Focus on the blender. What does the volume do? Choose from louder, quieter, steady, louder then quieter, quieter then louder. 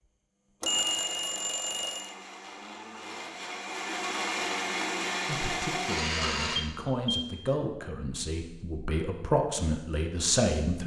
louder.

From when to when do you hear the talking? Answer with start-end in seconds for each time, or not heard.
5.2-10.8.